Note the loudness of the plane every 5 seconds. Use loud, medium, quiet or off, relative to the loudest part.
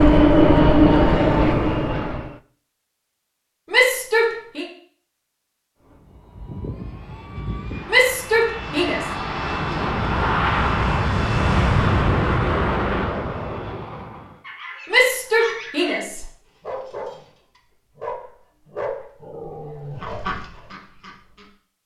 loud, quiet, medium, off, off.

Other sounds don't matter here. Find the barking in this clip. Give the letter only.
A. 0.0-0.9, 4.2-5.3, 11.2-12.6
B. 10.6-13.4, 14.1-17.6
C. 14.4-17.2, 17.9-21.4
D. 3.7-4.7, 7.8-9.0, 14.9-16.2
C.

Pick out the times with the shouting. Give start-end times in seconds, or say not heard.
3.7-4.7, 7.8-9.0, 14.9-16.2.